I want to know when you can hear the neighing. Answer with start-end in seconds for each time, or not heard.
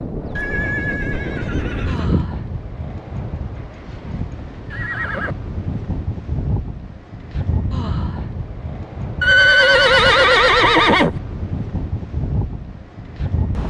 0.3-2.3, 4.7-5.3, 9.2-11.2.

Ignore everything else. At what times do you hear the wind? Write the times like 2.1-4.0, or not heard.
0.0-13.6.